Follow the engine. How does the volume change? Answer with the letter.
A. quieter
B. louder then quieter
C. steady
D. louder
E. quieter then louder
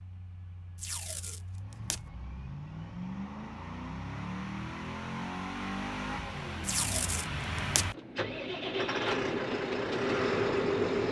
D.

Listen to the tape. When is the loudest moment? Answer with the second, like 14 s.
7 s.